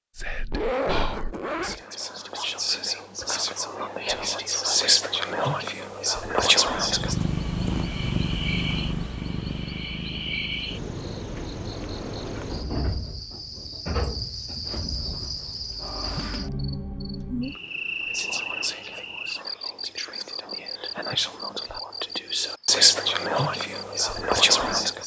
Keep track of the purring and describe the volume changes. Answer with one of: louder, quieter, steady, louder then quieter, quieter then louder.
quieter.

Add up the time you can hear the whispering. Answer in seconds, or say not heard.
14 s.